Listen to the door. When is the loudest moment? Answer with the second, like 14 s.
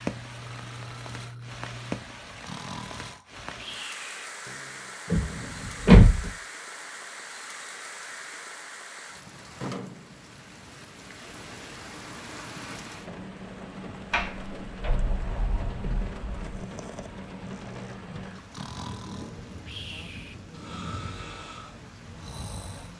6 s.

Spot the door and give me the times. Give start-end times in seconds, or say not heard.
5.0-6.3, 14.1-16.6.